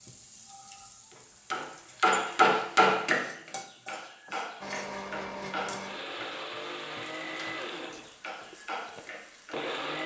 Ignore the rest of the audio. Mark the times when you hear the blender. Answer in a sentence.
You can hear the blender from 4.6 to 10.0 s.